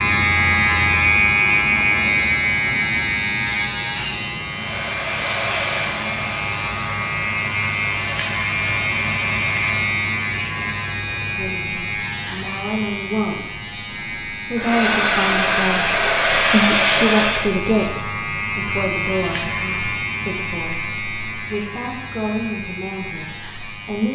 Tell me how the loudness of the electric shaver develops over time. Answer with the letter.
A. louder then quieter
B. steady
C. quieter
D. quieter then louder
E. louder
C.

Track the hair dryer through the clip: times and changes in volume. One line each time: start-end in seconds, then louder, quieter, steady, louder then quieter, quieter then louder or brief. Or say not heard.
4.5-9.9 quieter
14.6-17.5 brief.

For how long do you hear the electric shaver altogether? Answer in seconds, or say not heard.
24 s.